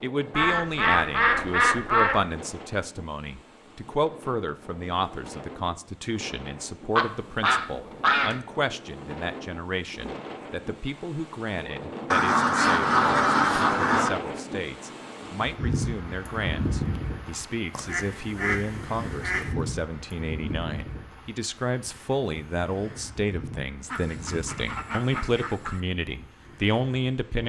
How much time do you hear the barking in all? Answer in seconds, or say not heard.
not heard.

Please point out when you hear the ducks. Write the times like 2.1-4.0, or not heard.
0.3-2.2, 7.0-8.4, 12.1-14.1, 17.8-19.6, 23.9-25.8.